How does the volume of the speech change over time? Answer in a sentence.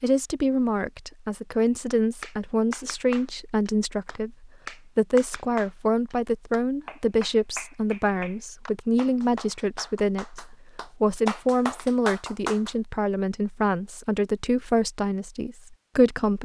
The volume of the speech stays about the same.